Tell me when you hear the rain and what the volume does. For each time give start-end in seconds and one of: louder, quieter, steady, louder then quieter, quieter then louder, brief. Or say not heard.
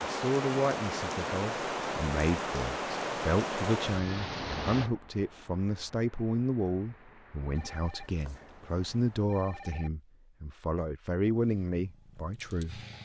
0.0-9.3 quieter.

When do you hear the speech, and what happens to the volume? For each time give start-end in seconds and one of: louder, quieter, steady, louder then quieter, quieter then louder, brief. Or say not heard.
0.0-12.8 steady.